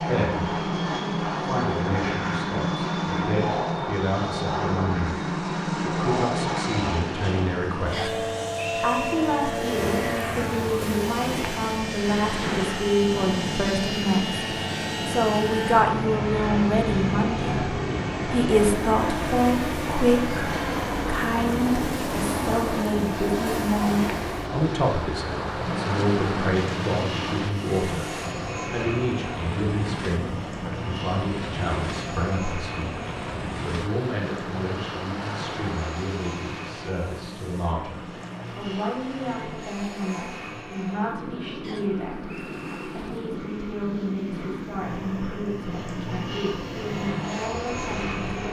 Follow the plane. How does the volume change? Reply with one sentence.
The loudness of the plane goes down.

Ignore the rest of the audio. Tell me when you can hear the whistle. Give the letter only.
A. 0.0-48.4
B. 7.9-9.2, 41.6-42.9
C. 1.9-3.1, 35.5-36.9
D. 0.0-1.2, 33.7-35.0
B.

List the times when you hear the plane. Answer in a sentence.
You can hear the plane from 0.0 to 48.4 s.